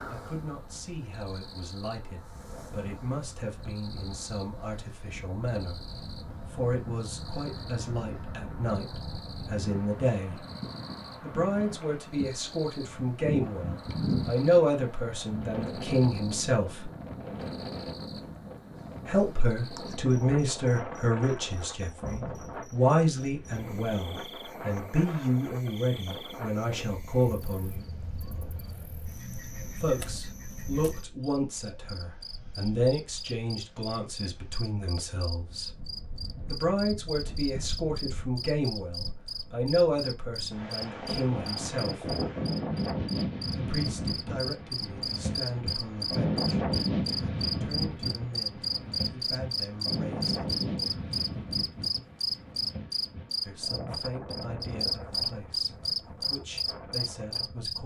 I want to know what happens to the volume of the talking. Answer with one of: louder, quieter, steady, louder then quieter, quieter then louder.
louder then quieter.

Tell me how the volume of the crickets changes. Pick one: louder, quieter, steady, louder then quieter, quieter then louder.
louder.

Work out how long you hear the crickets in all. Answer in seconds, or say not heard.
58 s.